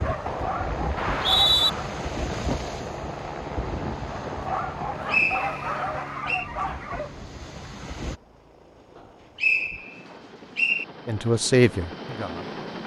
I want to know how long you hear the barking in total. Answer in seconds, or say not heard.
5 s.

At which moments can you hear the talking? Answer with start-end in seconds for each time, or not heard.
11.1-12.6.